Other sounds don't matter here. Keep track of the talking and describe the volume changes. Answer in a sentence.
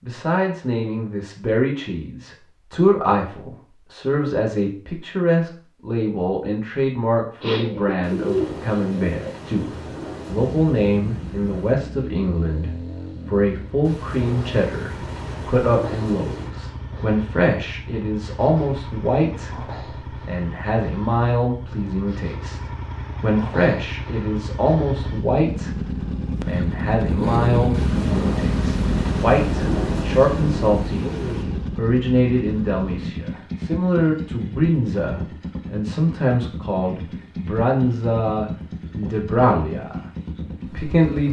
The volume of the talking stays about the same.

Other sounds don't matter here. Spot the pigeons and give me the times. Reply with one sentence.
The pigeons can be heard from 7.4 to 9.3 s.